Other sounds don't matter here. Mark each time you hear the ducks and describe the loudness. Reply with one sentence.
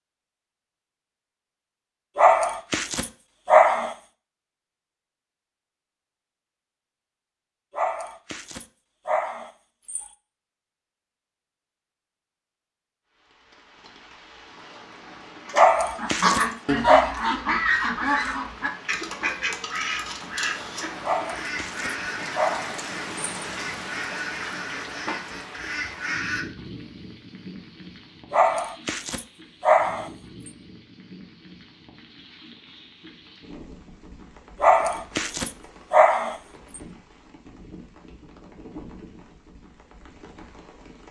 You can hear the ducks from 15.4 to 26.4 s, getting quieter.